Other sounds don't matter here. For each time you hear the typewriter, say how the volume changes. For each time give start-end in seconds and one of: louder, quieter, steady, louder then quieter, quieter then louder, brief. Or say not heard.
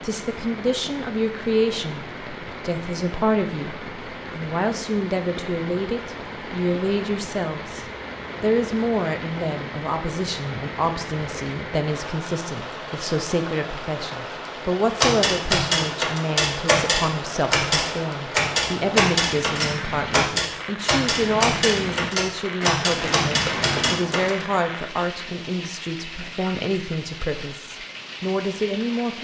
15.0-24.4 steady.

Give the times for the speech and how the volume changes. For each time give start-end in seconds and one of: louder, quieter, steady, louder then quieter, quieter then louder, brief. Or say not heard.
0.0-29.1 steady.